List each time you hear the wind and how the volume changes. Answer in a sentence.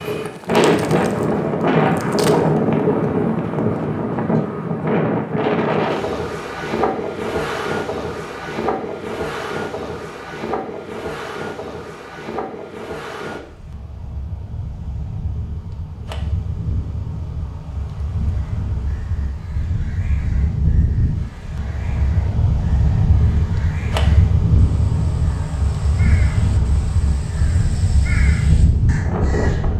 You can hear the wind from 0.0 to 29.7 s, getting quieter then louder.